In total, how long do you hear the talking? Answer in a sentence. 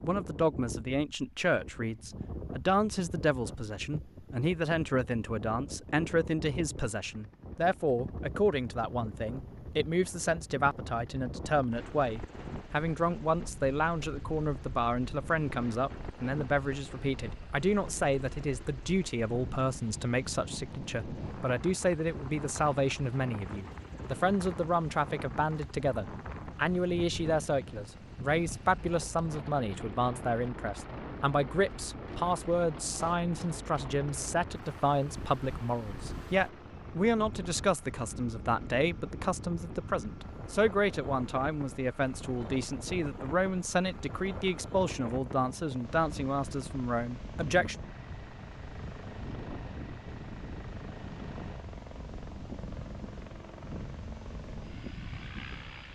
You can hear the talking for 48 seconds altogether.